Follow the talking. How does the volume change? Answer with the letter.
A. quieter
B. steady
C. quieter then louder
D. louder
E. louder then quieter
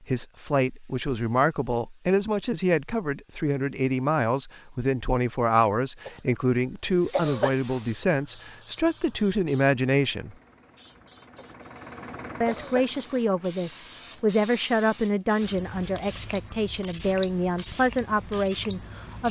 B.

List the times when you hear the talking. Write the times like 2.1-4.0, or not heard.
0.1-10.3, 12.4-19.2.